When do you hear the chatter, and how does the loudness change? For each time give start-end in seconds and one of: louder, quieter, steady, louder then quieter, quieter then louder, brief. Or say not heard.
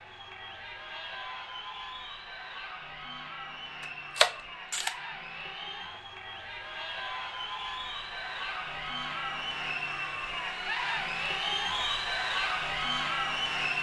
0.0-13.7 louder.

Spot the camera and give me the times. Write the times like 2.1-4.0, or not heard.
3.8-5.0.